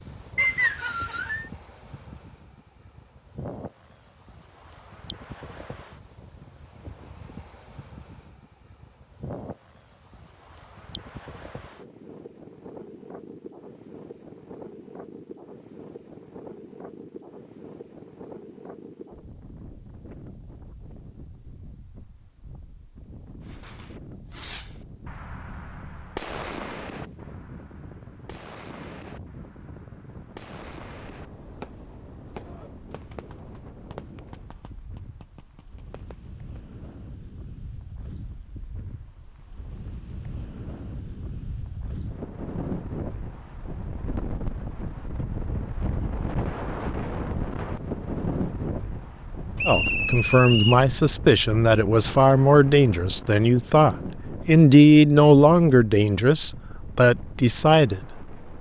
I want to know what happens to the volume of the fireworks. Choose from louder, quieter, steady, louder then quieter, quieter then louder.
quieter.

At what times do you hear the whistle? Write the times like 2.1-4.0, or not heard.
0.3-1.4, 49.5-50.9.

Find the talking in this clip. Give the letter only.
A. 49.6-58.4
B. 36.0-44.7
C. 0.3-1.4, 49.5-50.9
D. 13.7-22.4
A.